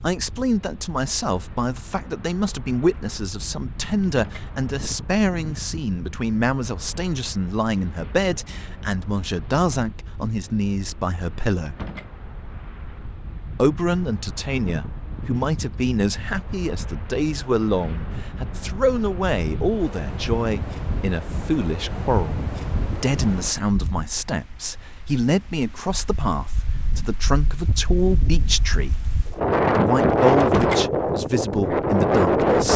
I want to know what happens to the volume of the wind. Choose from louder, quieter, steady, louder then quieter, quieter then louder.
louder.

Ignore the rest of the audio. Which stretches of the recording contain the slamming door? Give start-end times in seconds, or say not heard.
4.0-4.5, 11.7-12.1, 30.4-30.9.